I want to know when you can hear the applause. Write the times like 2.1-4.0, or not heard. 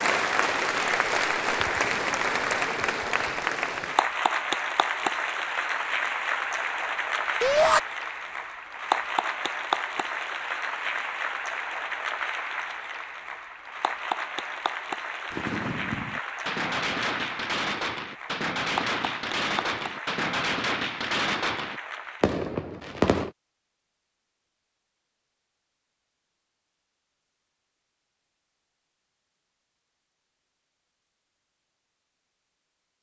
0.0-22.4.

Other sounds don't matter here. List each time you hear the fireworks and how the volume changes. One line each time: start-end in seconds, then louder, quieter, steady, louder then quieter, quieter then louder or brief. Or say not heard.
15.3-23.3 steady.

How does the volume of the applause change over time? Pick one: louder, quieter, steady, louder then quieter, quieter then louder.
quieter.